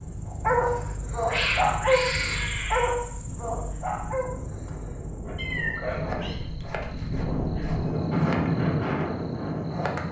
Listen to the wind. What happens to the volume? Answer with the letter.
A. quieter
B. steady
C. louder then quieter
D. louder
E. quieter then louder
D.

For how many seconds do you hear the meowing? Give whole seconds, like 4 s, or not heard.
3 s.